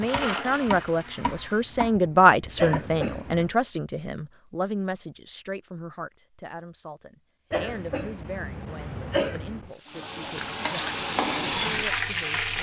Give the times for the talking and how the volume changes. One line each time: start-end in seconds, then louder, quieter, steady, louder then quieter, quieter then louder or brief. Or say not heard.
0.0-12.5 quieter.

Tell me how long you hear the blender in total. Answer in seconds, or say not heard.
2 s.